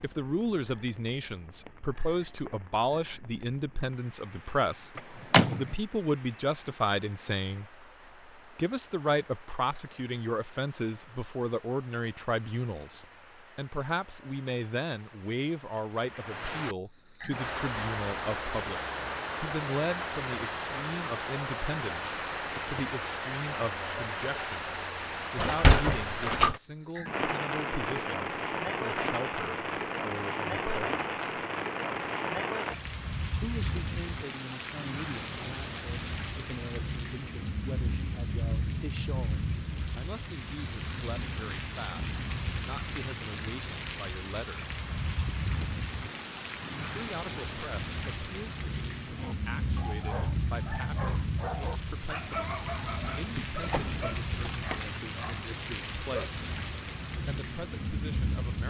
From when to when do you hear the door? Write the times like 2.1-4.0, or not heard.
5.0-5.7, 25.4-26.6, 53.4-54.8.